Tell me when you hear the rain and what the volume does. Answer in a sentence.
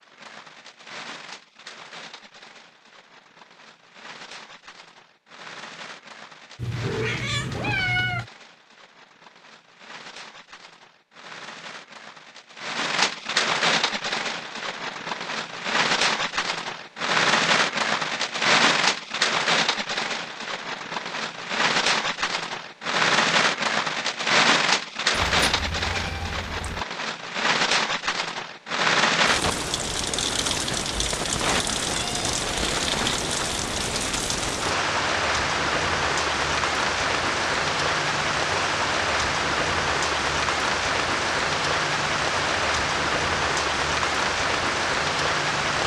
You can hear the rain from 0.0 to 45.8 s, getting louder.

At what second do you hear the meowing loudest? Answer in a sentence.
The loudest moment of the meowing is at 8 seconds.